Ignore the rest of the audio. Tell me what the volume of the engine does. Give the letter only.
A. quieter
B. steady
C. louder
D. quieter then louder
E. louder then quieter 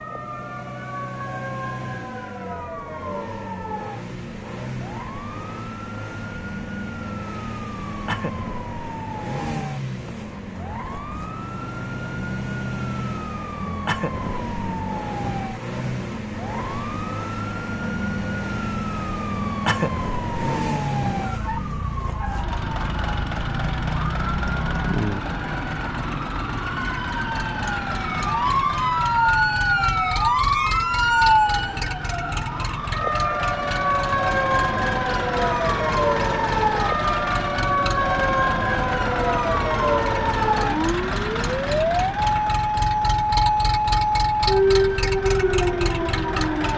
C.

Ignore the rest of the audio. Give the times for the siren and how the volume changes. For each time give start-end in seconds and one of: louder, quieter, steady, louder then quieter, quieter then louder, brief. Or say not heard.
0.0-46.7 louder.